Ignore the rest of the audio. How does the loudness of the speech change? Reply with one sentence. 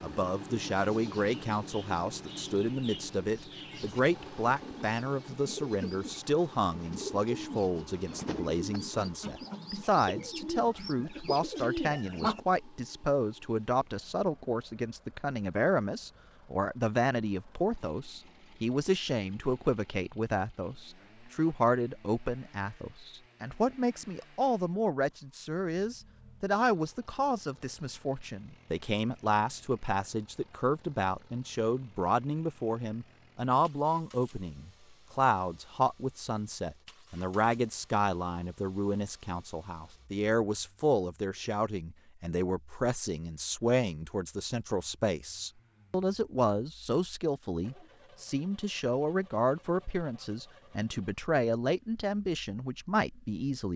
The volume of the speech stays about the same.